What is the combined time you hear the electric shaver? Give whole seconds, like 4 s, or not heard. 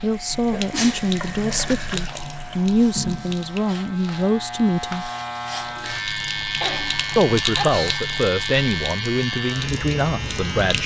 11 s.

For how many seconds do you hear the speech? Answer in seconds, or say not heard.
9 s.